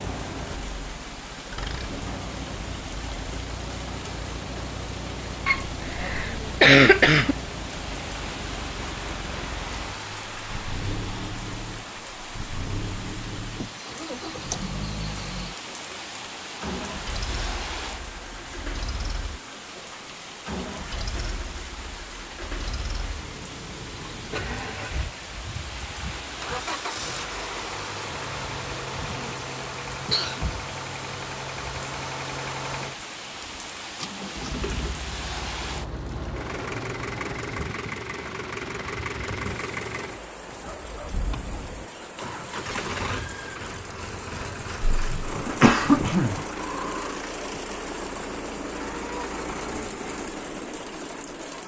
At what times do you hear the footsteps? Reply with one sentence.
The footsteps can't be heard in this clip.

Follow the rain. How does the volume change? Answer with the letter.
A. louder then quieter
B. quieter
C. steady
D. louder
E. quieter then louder
C.